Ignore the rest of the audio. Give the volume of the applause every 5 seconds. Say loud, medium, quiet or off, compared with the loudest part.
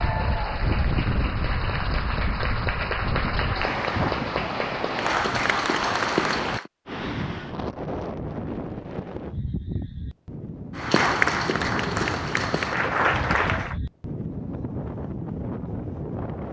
medium, loud, loud, off.